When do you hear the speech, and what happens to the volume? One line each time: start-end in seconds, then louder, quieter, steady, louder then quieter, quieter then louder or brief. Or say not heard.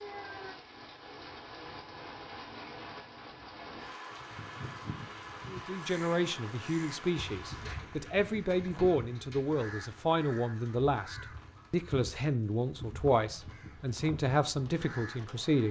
5.5-15.6 steady.